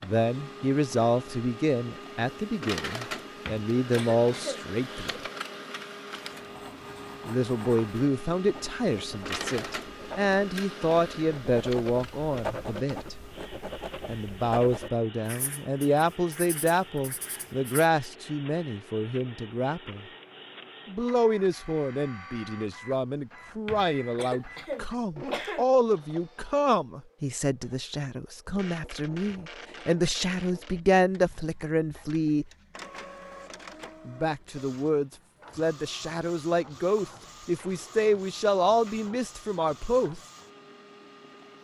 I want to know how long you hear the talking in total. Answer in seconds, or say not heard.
35 s.